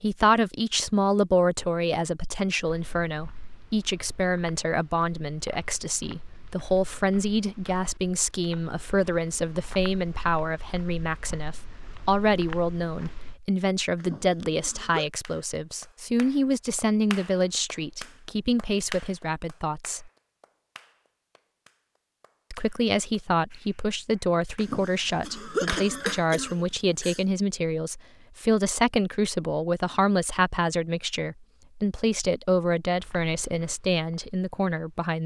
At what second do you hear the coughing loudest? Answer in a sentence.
The loudest moment of the coughing is at 26 seconds.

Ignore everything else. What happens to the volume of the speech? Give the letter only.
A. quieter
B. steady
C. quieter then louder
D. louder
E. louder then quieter
B.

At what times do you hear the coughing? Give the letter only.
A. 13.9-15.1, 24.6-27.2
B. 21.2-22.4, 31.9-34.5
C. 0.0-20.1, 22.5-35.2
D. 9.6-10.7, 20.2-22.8
A.